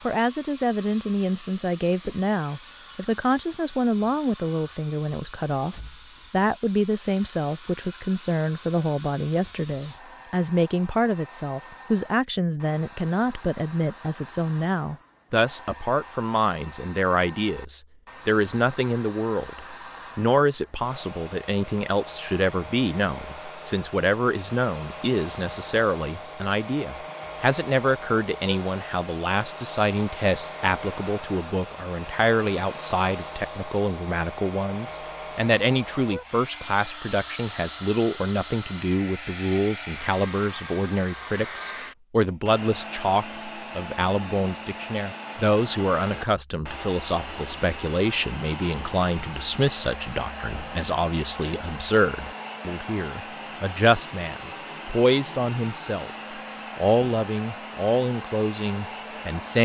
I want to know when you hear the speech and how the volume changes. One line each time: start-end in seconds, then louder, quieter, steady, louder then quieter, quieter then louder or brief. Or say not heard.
0.1-56.1 steady
56.8-59.5 brief.